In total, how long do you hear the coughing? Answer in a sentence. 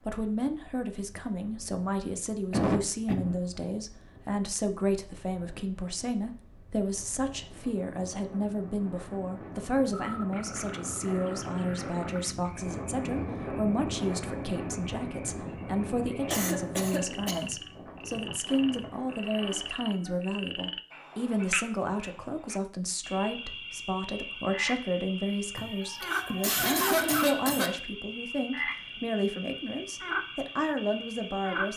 You can hear the coughing for 4 seconds altogether.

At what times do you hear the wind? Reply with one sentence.
You can hear the wind from 0.0 to 19.8 s.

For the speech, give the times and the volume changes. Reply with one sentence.
You can hear the speech from 0.0 to 31.7 s, at a steady volume.